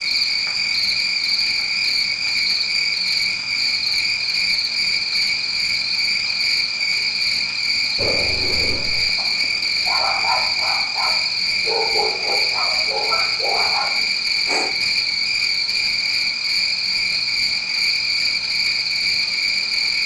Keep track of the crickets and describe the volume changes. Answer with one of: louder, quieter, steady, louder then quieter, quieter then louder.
steady.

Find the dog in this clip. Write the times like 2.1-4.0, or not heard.
8.0-14.7.